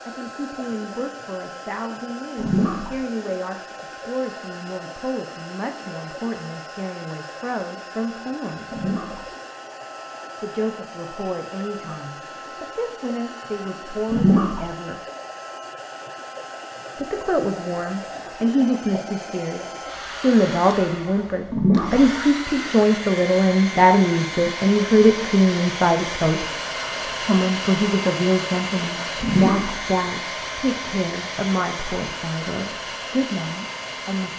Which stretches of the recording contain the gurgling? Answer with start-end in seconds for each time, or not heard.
2.4-2.9, 8.7-9.2, 14.1-14.6, 21.5-22.0, 29.2-29.7.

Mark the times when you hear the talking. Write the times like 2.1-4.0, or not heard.
0.1-8.7, 10.4-15.0, 16.9-26.4, 27.2-34.3.